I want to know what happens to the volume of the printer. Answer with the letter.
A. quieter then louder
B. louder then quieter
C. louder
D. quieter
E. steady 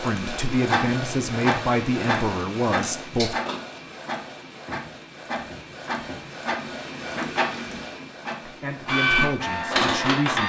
A.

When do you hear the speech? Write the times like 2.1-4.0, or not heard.
0.0-3.4, 8.4-10.4.